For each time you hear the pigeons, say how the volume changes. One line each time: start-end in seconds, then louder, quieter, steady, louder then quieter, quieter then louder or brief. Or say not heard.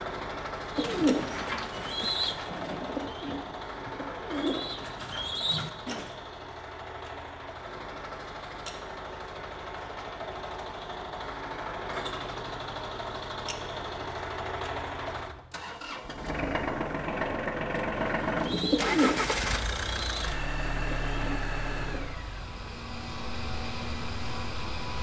0.8-6.2 quieter then louder
18.0-22.1 quieter.